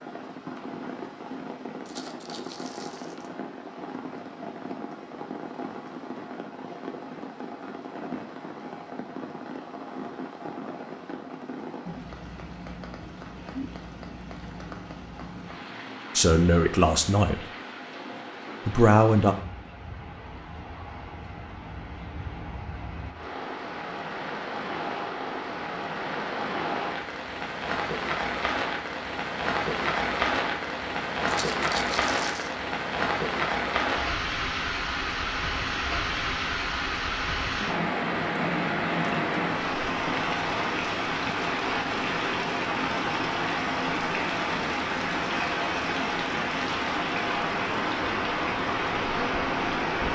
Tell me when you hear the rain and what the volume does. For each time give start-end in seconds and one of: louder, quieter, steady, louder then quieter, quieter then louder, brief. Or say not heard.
0.0-50.1 louder.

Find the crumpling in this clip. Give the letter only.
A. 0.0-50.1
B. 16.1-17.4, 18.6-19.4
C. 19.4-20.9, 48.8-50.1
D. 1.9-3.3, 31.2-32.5
D.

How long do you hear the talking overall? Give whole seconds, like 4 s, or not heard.
2 s.